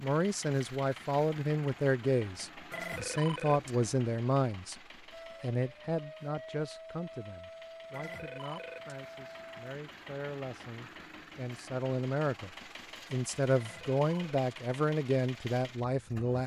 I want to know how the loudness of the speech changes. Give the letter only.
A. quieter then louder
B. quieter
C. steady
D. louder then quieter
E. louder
A.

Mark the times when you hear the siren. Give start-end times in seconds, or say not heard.
5.1-9.8.